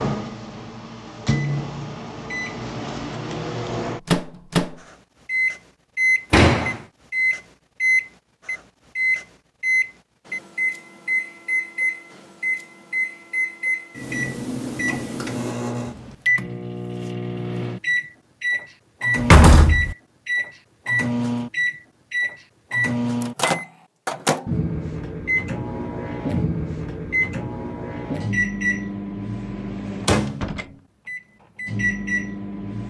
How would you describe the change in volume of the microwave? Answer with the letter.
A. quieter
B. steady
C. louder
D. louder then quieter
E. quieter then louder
B.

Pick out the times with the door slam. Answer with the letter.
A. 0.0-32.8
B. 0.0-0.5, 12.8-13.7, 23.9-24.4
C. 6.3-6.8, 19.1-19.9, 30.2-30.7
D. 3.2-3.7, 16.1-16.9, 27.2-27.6
C.